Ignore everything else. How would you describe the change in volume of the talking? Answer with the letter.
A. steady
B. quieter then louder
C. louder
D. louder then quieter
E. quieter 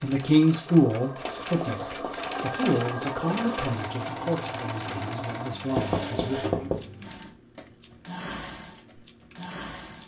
E.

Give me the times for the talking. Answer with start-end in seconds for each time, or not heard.
0.0-6.5.